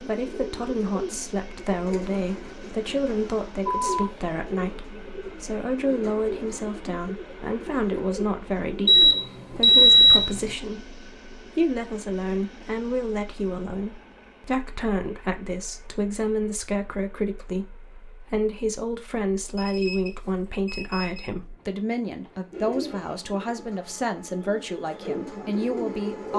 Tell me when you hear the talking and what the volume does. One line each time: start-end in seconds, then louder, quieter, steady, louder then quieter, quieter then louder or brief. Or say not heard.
0.0-26.3 steady.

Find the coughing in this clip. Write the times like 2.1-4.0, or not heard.
not heard.